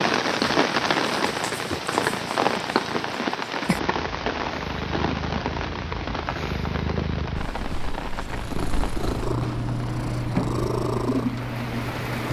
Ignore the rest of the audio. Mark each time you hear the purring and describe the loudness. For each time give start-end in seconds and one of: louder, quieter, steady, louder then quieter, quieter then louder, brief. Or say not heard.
0.2-12.2 louder.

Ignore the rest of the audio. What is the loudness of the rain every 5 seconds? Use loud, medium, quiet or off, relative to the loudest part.
loud, medium, medium.